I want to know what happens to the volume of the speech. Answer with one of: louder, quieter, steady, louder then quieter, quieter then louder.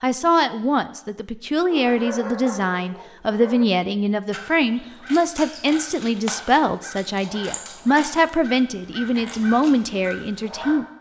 steady.